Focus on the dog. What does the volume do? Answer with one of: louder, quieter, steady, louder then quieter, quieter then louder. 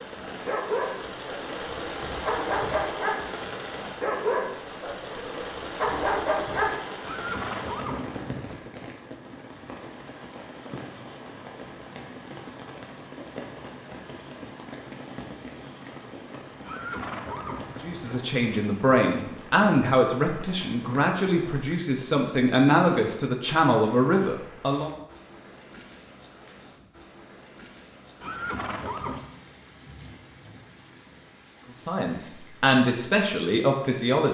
steady.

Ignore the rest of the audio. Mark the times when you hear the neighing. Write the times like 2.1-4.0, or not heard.
7.0-8.6, 16.6-18.2, 28.2-29.2.